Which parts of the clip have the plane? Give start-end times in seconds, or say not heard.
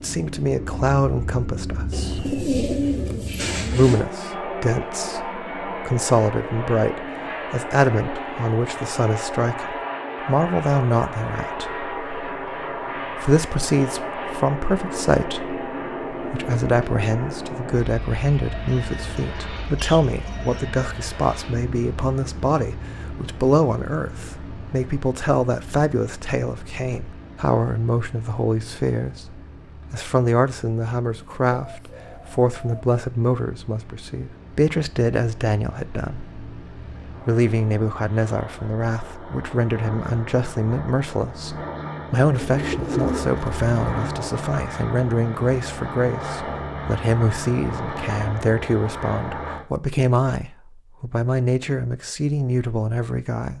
0.0-49.6.